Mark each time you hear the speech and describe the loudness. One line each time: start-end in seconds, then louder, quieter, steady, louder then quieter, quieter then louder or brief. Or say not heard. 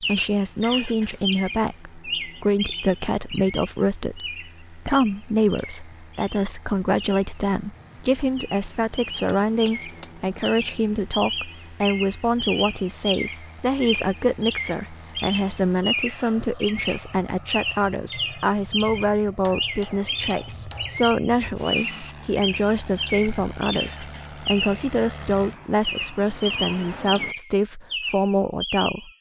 0.0-29.1 steady.